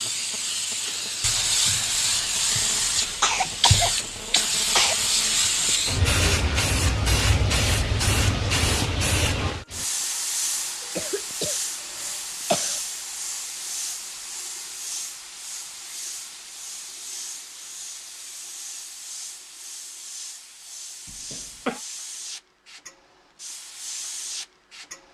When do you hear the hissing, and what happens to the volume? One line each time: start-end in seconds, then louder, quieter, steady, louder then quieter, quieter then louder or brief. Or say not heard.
0.0-25.0 quieter.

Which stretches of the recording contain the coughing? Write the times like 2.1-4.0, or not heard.
3.2-5.0, 10.9-12.8, 21.1-21.8.